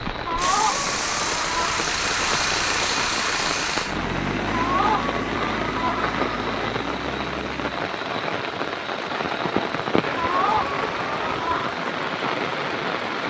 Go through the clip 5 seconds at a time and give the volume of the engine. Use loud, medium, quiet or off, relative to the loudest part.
loud, medium, medium.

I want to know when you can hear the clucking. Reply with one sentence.
You can hear the clucking from 0.2 to 1.8 s, from 4.5 to 6.7 s and from 10.1 to 11.8 s.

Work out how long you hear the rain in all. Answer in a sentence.
You can hear the rain for 13 seconds altogether.